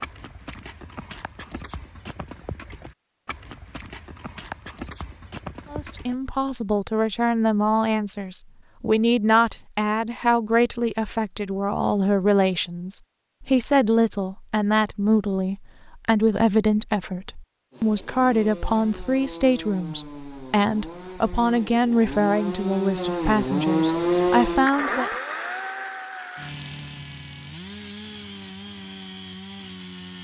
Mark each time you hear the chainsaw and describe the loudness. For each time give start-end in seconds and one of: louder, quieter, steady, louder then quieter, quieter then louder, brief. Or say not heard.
17.7-30.1 louder then quieter.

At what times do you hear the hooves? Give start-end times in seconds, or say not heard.
0.0-6.2.